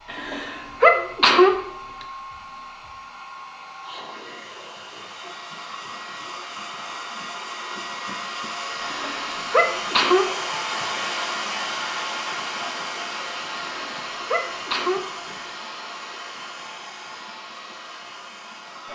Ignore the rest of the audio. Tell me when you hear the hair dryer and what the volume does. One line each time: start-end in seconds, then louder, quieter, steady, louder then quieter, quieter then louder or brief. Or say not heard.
0.0-18.8 louder then quieter.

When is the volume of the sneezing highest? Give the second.
1 s.